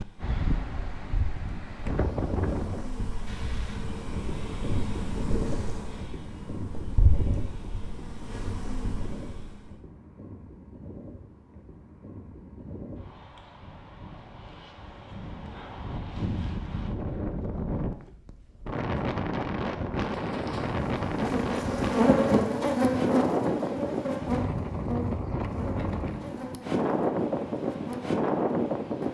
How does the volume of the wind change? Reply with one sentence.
The loudness of the wind goes down, then up.